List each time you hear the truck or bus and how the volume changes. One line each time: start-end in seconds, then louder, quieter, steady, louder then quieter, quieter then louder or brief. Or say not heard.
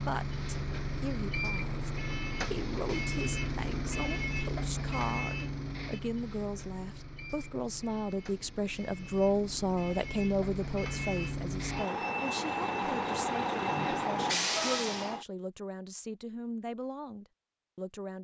0.0-15.2 quieter then louder.